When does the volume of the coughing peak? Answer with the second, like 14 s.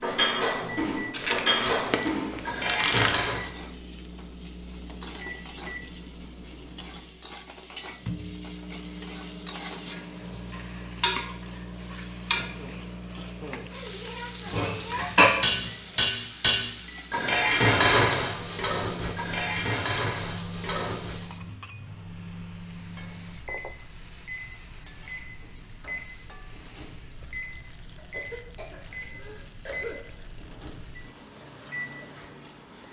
30 s.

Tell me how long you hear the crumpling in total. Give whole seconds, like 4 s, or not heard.
2 s.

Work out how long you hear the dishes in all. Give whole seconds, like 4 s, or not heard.
10 s.